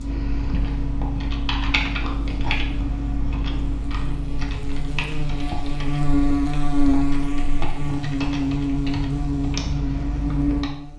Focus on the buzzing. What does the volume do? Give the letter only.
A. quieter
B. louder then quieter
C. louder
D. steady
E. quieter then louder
C.